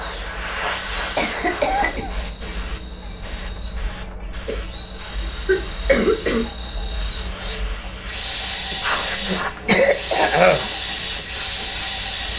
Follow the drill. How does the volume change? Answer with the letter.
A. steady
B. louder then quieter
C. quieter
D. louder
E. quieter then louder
D.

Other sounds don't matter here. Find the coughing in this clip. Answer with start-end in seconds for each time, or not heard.
1.1-2.1, 4.5-6.5, 8.7-10.7.